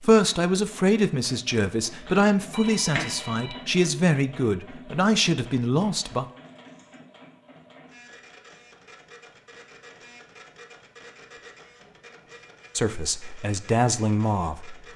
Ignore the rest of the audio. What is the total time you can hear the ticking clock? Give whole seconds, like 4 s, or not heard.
not heard.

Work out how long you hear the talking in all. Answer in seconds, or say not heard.
8 s.